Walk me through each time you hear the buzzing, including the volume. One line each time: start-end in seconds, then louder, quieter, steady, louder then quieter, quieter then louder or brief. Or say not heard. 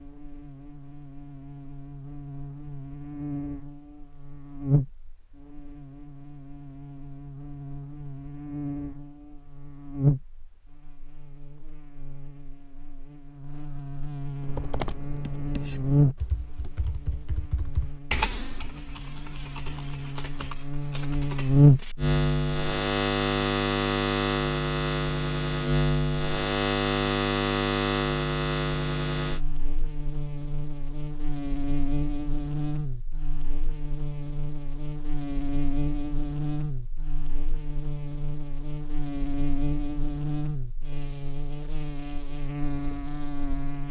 0.0-43.8 louder then quieter.